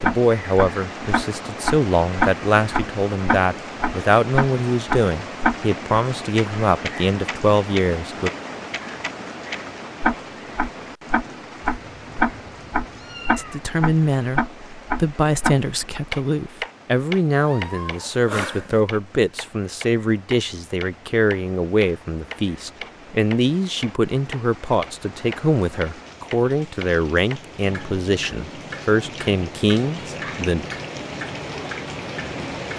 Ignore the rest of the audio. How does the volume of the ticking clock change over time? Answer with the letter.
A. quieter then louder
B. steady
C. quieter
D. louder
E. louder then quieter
C.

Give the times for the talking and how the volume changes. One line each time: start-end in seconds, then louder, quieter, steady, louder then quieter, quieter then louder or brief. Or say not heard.
0.0-8.3 steady
13.3-30.6 steady.